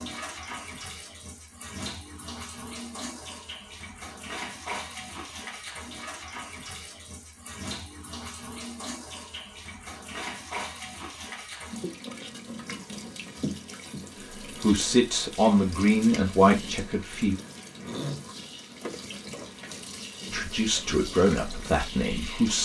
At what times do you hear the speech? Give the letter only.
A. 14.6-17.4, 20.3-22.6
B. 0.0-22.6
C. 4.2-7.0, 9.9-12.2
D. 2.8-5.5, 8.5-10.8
A.